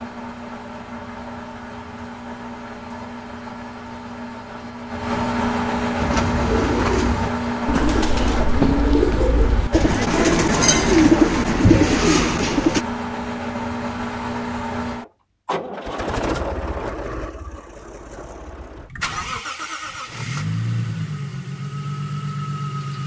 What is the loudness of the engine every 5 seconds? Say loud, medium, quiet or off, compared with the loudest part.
medium, loud, loud, medium, loud.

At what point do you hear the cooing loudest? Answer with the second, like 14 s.
11 s.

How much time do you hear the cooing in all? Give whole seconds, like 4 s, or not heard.
7 s.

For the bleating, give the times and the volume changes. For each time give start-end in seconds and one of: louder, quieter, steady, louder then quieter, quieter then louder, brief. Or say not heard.
not heard.